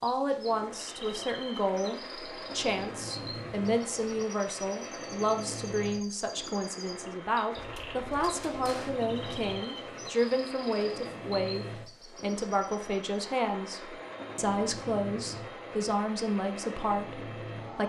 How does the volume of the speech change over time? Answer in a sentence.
The volume of the speech stays about the same.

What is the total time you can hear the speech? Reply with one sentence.
The speech can be heard for 18 seconds in total.